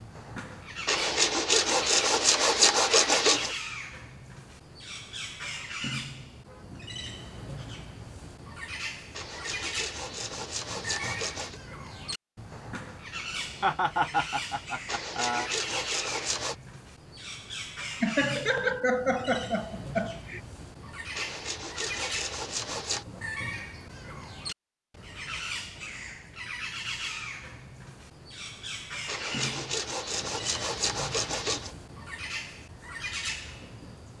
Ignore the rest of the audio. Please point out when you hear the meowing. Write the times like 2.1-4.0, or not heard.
not heard.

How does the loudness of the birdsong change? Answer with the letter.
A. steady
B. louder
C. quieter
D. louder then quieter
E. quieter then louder
A.